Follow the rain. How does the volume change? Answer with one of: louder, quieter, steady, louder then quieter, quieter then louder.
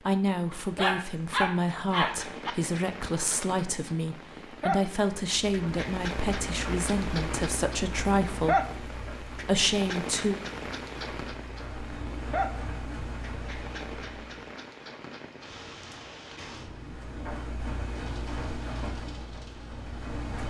louder then quieter.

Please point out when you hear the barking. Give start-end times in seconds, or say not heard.
0.5-2.5.